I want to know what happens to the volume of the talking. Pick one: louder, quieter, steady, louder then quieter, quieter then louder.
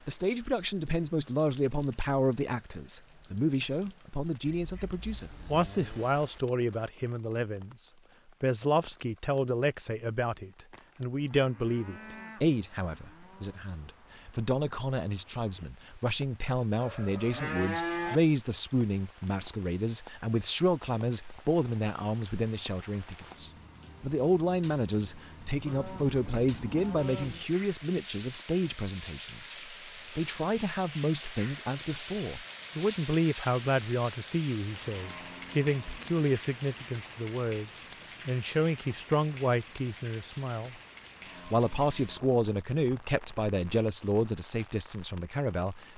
steady.